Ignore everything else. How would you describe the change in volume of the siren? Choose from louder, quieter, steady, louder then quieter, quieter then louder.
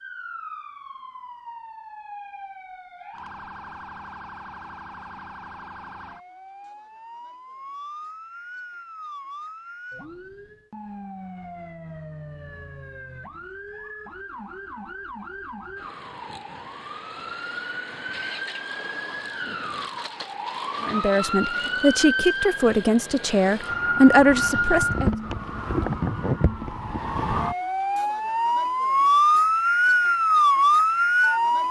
louder.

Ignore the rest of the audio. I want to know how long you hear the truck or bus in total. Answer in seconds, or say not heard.
not heard.